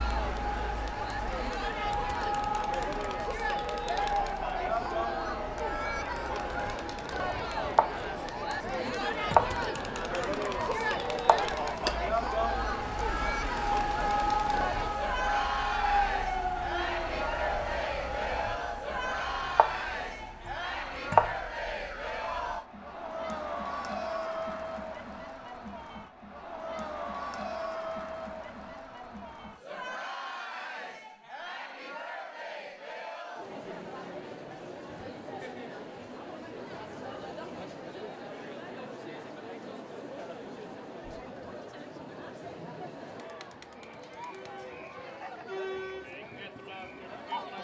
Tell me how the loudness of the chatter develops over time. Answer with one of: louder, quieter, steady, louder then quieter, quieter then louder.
quieter.